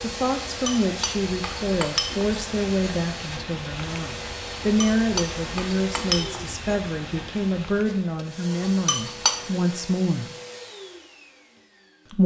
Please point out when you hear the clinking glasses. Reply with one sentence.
The clinking glasses can be heard from 0.7 to 2.2 s, from 4.8 to 6.4 s and from 8.7 to 9.6 s.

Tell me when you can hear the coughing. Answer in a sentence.
The coughing can't be heard in this clip.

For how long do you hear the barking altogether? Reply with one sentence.
You can't hear the barking here.